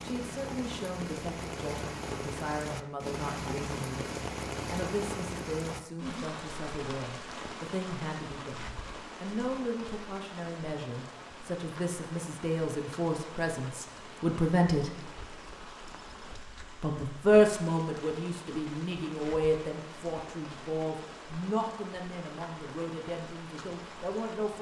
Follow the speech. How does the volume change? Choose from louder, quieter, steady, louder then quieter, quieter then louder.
louder then quieter.